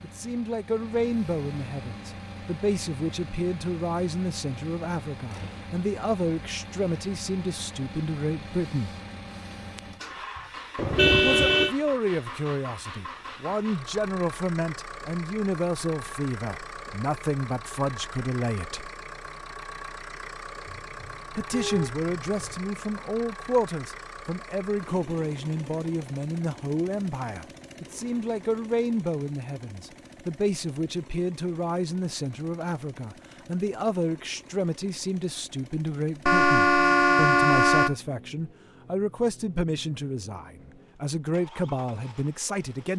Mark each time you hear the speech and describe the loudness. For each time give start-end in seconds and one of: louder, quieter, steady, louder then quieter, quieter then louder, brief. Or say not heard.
0.0-8.9 steady
11.2-18.9 steady
21.4-42.9 steady.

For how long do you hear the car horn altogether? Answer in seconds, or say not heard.
5 s.